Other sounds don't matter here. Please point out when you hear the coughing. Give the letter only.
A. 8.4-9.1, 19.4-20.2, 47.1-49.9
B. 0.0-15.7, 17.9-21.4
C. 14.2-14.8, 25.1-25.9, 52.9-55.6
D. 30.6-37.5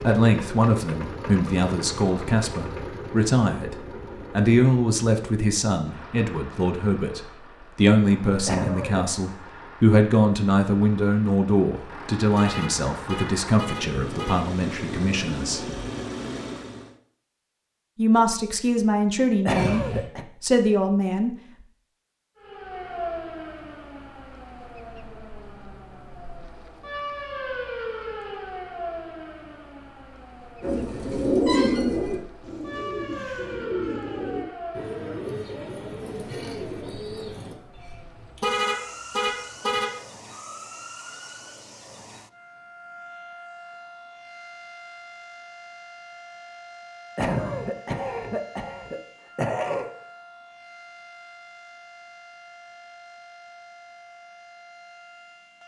A.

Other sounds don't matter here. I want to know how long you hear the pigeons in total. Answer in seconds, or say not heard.
7 s.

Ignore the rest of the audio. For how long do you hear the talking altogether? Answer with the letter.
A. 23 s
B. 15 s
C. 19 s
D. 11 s
C.